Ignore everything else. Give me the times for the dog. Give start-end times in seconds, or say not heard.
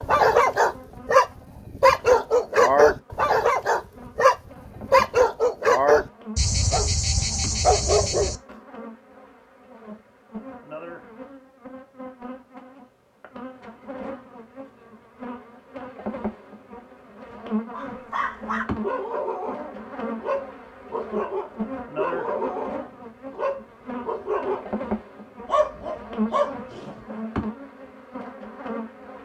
0.0-8.4, 17.7-24.9, 25.4-27.1.